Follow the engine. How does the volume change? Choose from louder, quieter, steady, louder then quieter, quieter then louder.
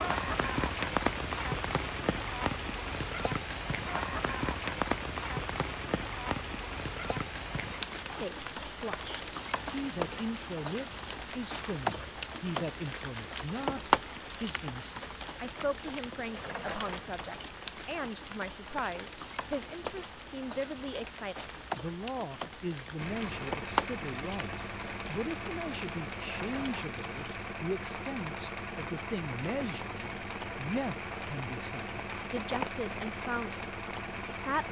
steady.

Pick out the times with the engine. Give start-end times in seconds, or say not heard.
22.9-34.6.